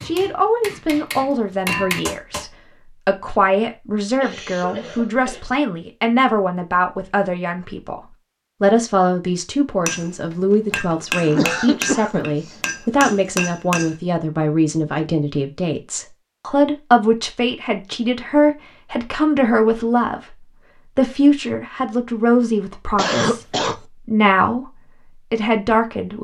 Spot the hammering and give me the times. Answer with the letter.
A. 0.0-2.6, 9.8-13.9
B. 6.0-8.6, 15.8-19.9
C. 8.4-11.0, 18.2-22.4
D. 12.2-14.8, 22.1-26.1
A.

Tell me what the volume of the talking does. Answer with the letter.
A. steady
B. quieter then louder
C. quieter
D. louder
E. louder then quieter
A.